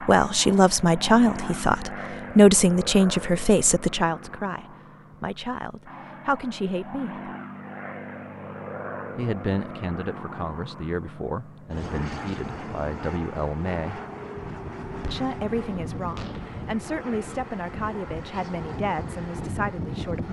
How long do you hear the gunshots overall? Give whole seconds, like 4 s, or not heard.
2 s.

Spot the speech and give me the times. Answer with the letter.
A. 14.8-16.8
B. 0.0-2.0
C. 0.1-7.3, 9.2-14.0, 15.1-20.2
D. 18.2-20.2
C.